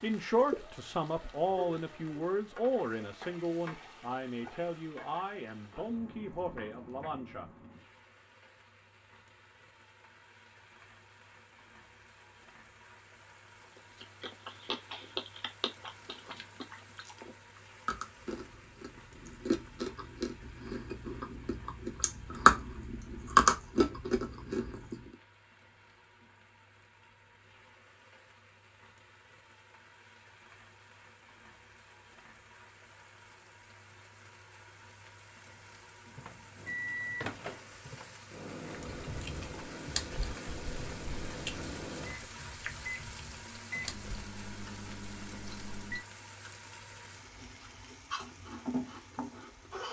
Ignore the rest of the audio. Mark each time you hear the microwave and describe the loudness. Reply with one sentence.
You can hear the microwave from 36.1 to 46.0 s, getting quieter.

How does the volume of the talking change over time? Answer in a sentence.
The loudness of the talking goes down.